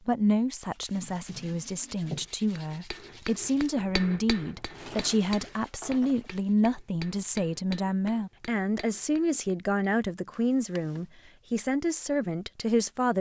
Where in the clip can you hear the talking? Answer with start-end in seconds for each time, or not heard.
0.1-13.1.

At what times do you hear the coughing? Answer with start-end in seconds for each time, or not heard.
not heard.